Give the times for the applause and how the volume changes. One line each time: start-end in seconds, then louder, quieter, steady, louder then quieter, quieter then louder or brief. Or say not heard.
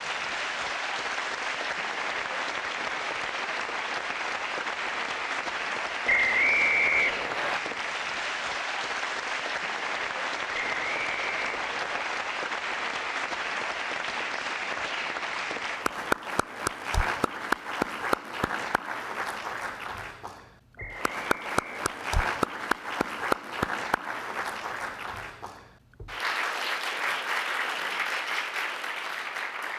0.0-29.7 steady.